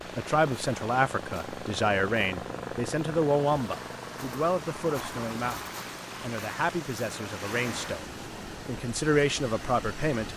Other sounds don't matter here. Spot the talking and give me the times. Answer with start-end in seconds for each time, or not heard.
0.1-10.3.